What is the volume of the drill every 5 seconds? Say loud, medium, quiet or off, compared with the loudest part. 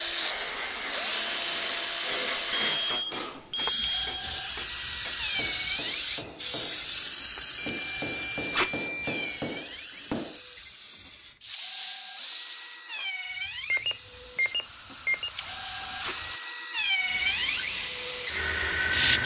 loud, medium, medium, loud.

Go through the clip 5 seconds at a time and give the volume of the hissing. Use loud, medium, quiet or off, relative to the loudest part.
loud, loud, medium, loud.